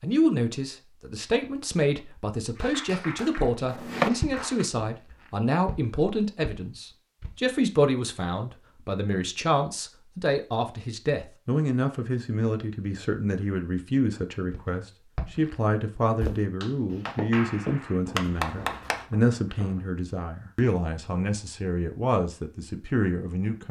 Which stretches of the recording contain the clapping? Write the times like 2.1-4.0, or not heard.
2.5-4.7, 16.6-19.1.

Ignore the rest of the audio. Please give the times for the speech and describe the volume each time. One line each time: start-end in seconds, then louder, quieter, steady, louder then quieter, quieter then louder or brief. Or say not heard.
0.0-23.6 steady.